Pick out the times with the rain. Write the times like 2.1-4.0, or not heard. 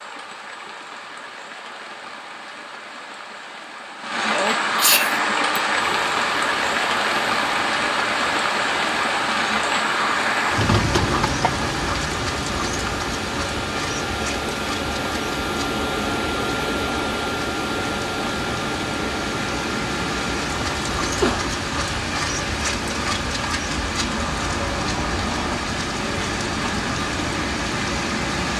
0.0-28.5.